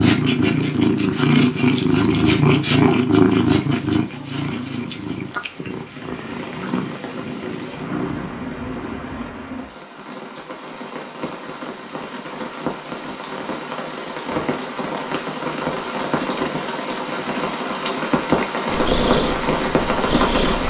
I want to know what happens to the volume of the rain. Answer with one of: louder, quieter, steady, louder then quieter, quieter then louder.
louder.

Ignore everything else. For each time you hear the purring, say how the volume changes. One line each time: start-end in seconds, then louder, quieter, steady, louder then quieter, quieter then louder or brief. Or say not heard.
0.0-9.0 quieter
18.7-20.6 brief.